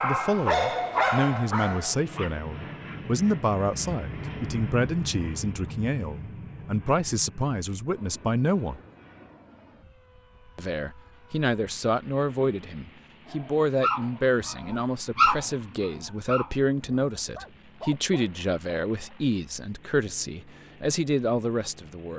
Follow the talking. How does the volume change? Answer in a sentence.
The volume of the talking stays about the same.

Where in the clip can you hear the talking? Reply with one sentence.
The talking can be heard from 0.0 to 8.8 s and from 10.6 to 22.1 s.